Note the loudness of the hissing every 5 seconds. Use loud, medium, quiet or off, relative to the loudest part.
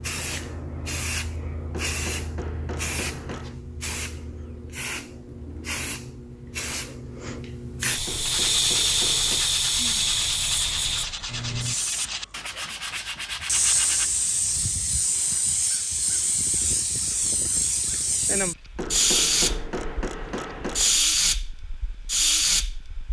medium, loud, loud, loud, loud.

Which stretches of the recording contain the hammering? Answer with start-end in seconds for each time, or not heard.
1.7-3.5, 8.1-9.6, 18.8-21.0.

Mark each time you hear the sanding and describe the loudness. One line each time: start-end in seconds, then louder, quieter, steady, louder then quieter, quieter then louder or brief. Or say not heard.
8.2-14.1 steady.